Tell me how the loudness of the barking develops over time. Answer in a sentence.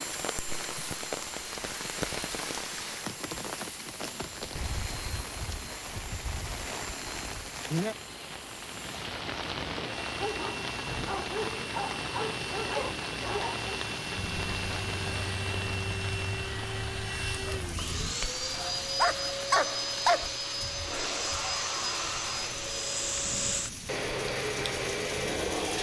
The volume of the barking goes down, then up.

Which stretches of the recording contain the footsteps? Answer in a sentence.
You can't hear the footsteps here.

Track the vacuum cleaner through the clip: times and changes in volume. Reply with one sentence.
You can hear the vacuum cleaner from 0.0 to 25.7 s, getting louder.